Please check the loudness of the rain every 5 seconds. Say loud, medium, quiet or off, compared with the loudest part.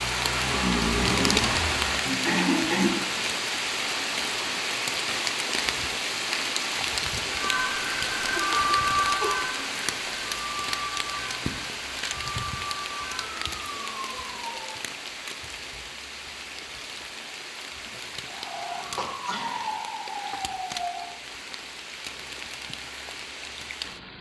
loud, loud, medium, medium, medium.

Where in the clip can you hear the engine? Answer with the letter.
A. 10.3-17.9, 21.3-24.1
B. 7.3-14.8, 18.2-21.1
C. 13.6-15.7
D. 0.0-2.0
D.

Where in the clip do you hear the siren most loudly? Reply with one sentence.
The volume of the siren peaks at 9 seconds.